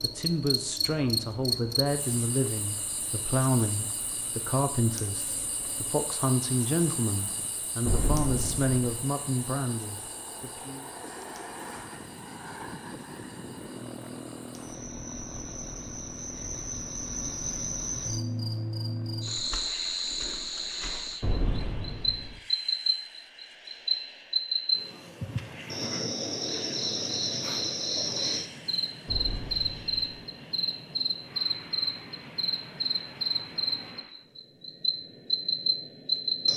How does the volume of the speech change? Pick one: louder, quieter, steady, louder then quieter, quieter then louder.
steady.